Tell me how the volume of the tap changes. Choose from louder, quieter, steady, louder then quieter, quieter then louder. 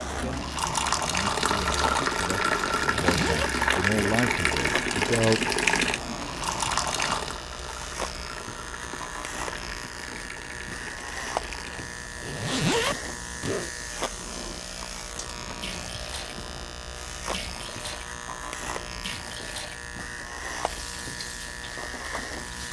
quieter.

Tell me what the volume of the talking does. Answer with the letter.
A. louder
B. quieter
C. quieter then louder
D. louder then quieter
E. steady
A.